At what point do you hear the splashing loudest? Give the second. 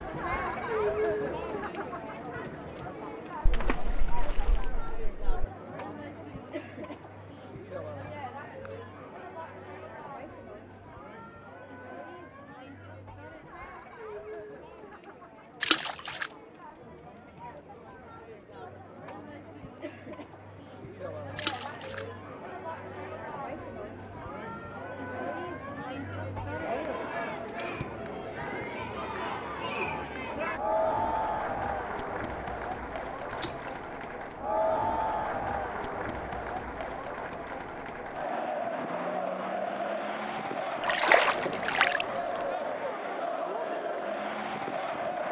41 s.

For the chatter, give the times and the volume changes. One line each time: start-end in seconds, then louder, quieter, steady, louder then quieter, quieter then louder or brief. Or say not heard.
0.0-45.2 quieter then louder.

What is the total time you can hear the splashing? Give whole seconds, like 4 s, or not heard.
5 s.